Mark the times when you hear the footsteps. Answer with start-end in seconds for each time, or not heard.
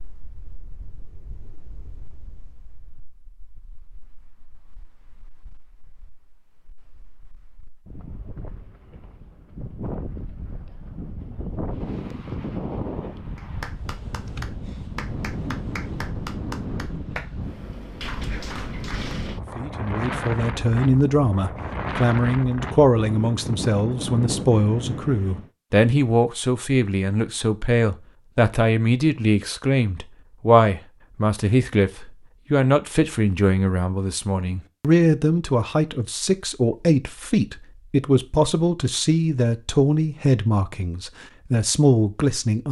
not heard.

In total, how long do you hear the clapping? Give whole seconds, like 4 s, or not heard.
5 s.